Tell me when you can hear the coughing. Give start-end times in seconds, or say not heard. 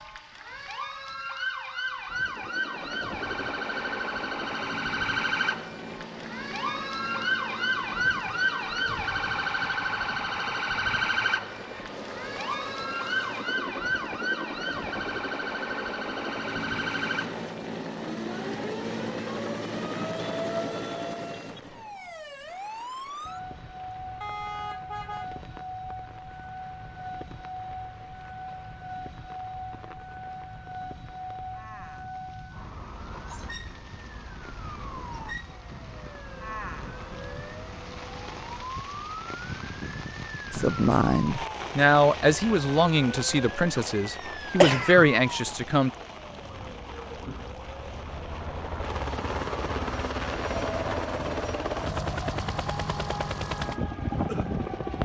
44.6-45.0.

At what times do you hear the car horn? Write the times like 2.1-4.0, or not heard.
24.2-25.3.